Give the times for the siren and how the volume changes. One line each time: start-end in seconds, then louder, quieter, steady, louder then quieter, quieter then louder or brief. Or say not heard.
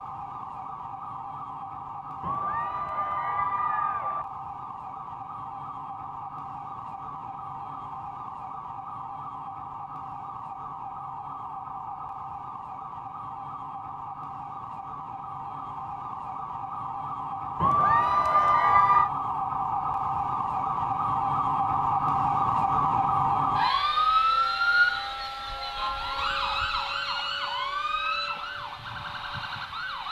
0.0-30.0 louder.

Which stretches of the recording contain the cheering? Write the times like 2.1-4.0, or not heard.
2.2-4.2, 17.6-19.1.